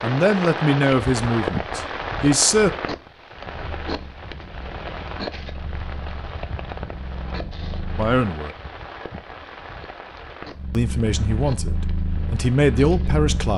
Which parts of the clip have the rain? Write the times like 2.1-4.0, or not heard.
0.0-13.5.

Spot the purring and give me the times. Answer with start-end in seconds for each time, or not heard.
3.6-8.2, 10.4-13.5.